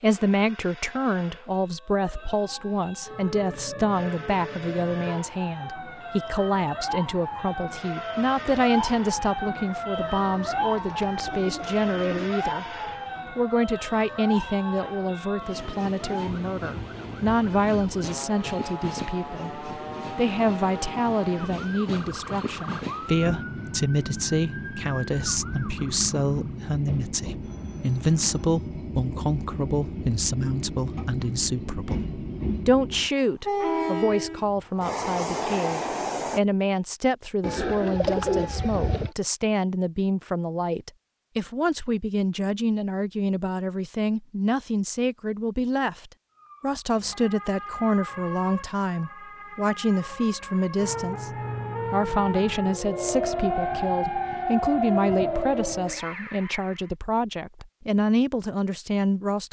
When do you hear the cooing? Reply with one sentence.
You can hear the cooing from 10.0 to 12.2 s and from 37.4 to 39.1 s.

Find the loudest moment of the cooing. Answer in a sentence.
The loudest moment of the cooing is at 38 seconds.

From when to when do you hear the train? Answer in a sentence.
The train can be heard from 0.0 to 36.4 s.